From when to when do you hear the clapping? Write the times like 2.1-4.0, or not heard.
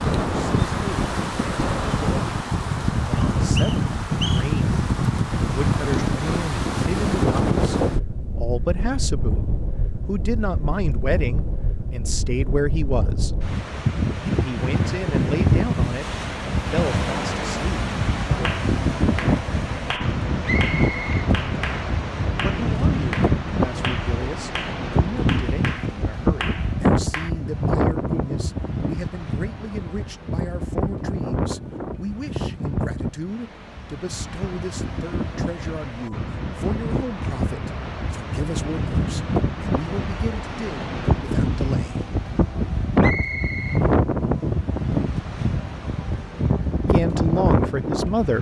18.4-27.3.